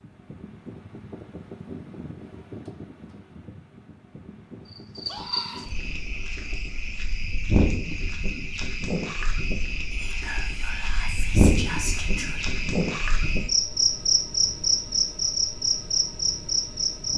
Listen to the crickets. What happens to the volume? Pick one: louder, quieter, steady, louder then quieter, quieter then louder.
louder.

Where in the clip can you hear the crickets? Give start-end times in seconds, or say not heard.
4.7-17.1.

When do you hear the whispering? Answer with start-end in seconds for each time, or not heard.
9.9-12.4.